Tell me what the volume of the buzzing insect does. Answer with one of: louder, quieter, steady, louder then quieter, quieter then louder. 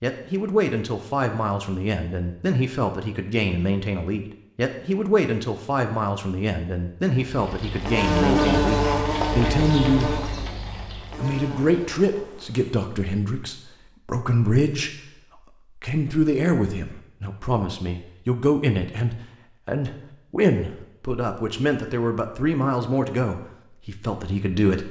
quieter.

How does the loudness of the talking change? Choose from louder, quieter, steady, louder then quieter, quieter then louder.
steady.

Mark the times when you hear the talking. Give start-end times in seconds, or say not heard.
0.0-10.2, 11.2-14.9, 15.8-24.8.